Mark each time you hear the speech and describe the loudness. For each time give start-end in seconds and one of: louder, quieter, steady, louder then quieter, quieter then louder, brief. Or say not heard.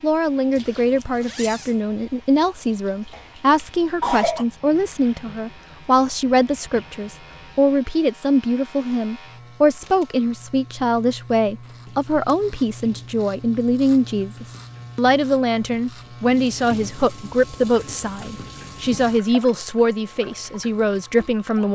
0.0-21.7 steady.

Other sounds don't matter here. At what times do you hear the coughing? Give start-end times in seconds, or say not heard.
3.1-4.5.